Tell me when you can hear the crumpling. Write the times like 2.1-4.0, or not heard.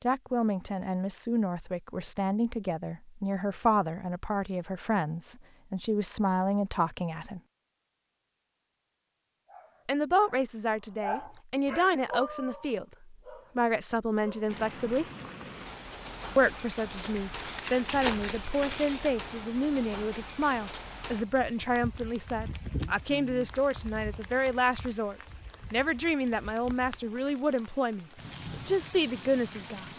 16.9-19.1.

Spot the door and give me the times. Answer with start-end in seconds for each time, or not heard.
not heard.